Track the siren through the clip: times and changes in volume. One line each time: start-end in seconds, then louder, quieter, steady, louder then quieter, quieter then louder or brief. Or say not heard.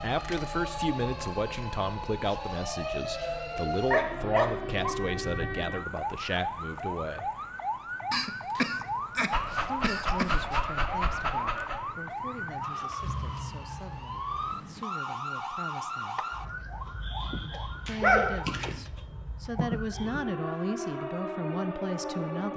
0.0-22.5 steady.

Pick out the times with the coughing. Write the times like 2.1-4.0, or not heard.
8.1-10.6.